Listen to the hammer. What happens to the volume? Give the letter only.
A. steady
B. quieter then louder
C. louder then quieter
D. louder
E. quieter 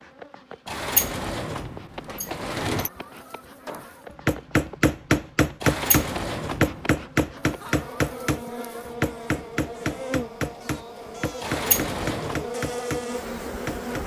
E.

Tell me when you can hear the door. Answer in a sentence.
The door can be heard from 0.7 to 2.9 s, from 5.6 to 6.8 s and from 11.4 to 12.4 s.